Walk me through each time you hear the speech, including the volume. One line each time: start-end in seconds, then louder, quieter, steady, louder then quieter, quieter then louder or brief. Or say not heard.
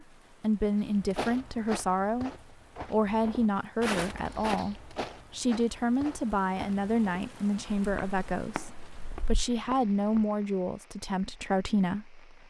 0.0-12.4 steady.